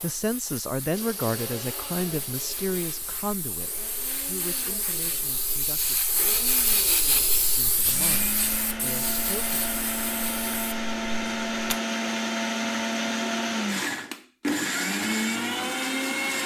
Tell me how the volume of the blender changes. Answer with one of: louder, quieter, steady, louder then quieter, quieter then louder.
louder.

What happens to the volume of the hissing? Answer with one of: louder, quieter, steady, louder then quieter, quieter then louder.
louder then quieter.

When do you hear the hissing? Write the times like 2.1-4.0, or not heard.
0.0-11.8.